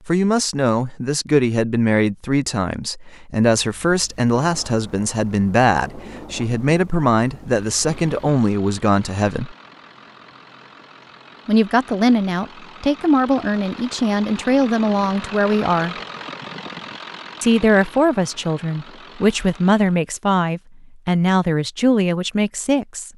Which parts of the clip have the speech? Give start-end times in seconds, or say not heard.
0.1-9.6, 11.4-15.9, 17.4-23.1.